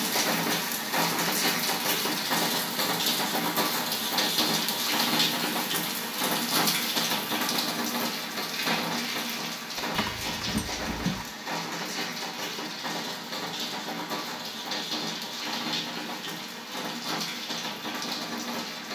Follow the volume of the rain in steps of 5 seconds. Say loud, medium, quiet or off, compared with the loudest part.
loud, loud, medium, medium.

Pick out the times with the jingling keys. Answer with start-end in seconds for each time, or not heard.
9.9-11.2.